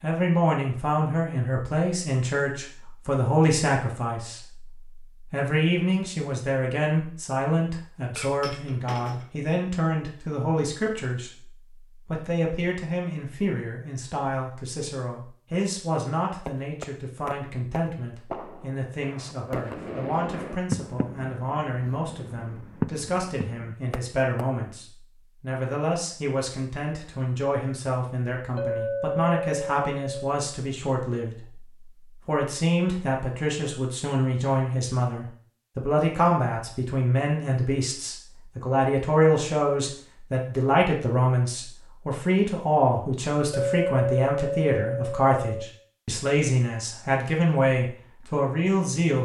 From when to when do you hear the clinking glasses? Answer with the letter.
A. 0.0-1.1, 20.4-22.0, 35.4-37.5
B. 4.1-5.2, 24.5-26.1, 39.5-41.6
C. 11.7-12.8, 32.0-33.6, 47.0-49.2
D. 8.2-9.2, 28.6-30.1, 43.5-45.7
D.